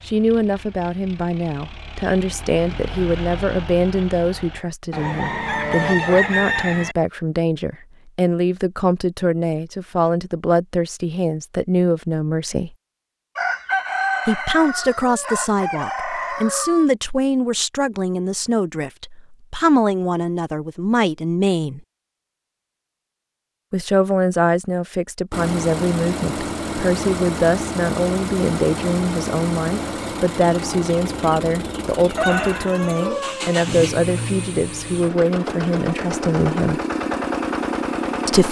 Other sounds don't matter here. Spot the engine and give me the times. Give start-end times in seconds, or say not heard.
0.0-4.6, 25.3-38.4.